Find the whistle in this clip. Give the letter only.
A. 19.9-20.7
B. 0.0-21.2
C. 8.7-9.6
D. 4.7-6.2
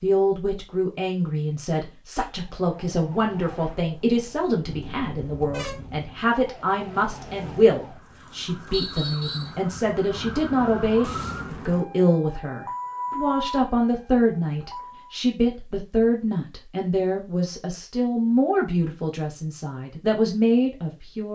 C.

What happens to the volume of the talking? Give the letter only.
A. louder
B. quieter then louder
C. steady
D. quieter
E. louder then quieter
C.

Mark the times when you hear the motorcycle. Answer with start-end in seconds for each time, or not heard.
not heard.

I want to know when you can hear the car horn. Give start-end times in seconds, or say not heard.
4.7-6.2.